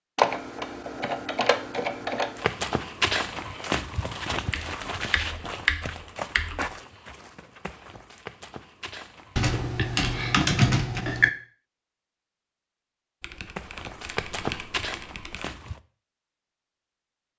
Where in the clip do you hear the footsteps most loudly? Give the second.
3 s.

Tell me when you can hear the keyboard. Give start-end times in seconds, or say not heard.
0.1-2.5, 4.5-6.8, 9.3-11.3, 13.2-15.5.